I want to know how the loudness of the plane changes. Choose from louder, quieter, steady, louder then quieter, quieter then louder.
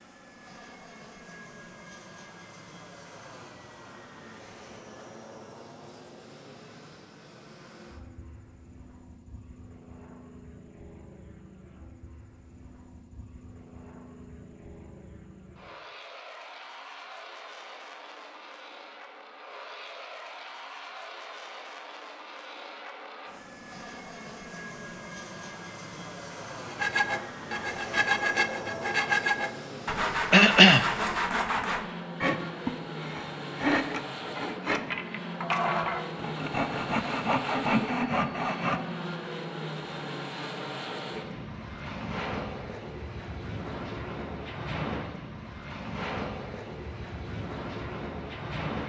louder.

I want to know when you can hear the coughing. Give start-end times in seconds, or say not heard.
30.3-30.9.